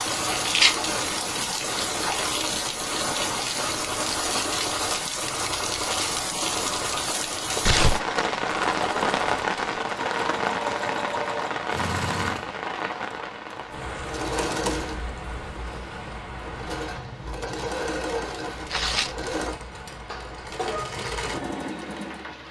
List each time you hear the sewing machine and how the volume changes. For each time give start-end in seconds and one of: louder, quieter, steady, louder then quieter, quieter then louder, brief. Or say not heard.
0.0-22.4 steady.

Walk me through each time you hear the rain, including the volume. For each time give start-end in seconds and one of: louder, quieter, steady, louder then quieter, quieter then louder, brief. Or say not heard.
0.0-22.4 quieter.